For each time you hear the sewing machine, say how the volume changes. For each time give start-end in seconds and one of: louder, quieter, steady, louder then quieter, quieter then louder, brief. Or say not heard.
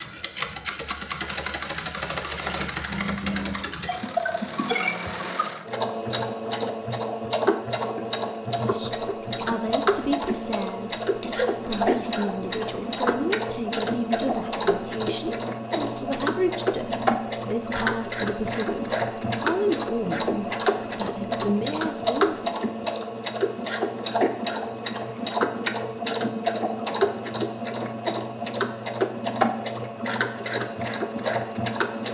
0.0-32.0 steady.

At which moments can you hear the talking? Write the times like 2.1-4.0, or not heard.
8.7-22.6.